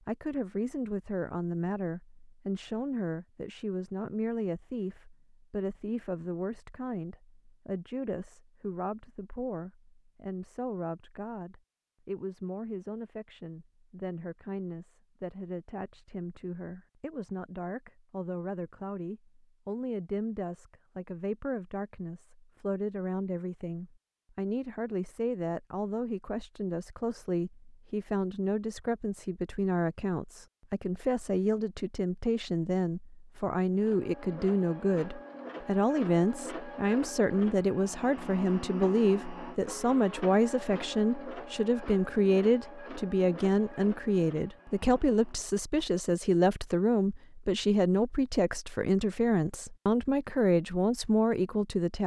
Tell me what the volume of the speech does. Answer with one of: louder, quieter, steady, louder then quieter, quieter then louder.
louder.